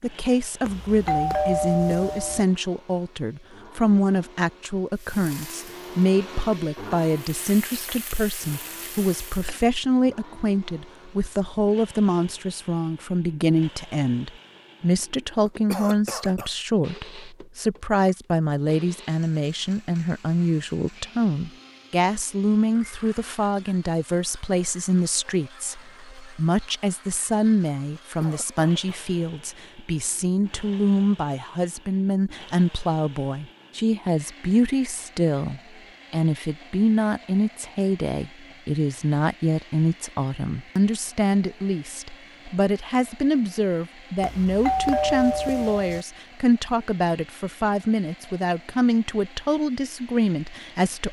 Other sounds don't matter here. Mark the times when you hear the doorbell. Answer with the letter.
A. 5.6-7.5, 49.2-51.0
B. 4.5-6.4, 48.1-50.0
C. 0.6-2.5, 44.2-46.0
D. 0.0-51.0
C.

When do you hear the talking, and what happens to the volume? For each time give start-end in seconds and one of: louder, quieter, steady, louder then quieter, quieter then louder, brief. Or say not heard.
0.0-51.0 steady.